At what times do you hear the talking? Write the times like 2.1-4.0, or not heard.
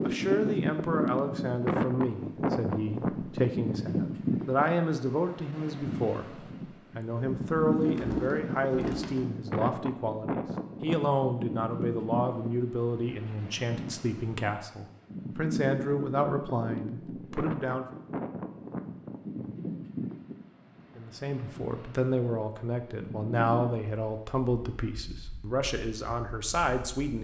0.0-17.9, 20.9-27.1.